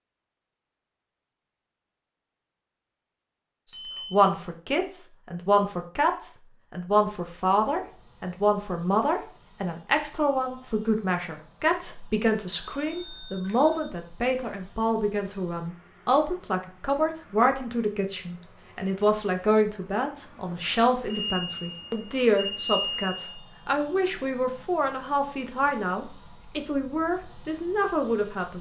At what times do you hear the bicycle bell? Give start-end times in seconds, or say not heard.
3.7-4.2, 12.6-13.9, 21.1-23.2.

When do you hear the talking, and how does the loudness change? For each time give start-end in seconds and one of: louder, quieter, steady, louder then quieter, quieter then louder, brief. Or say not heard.
4.1-28.5 steady.